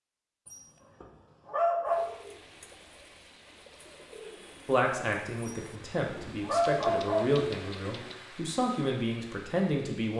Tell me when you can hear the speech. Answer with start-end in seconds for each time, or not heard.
4.7-10.1.